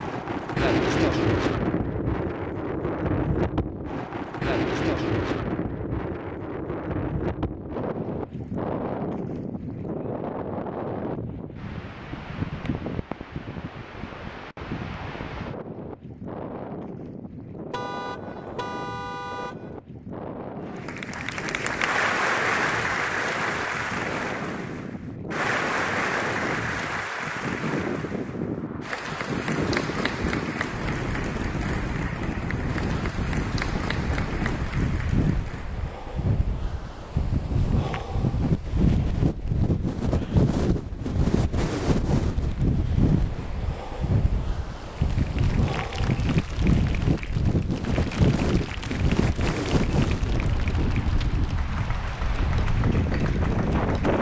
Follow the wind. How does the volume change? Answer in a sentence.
The loudness of the wind goes down, then up.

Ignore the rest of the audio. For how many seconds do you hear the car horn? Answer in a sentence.
The car horn can be heard for 2 seconds in total.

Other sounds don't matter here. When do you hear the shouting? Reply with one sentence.
You can't hear the shouting here.